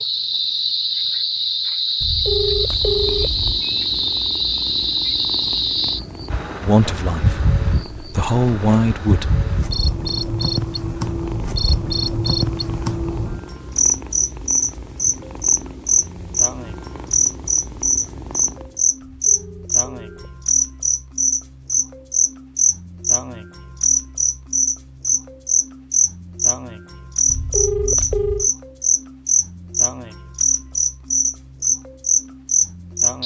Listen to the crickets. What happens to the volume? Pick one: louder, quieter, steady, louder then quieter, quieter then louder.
steady.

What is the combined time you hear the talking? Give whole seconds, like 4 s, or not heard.
3 s.